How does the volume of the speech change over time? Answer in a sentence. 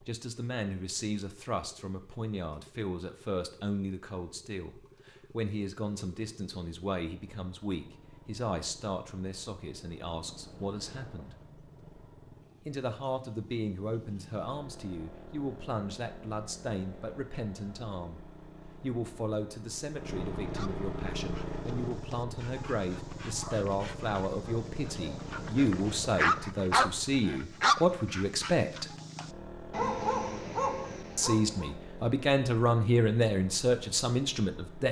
The volume of the speech goes up.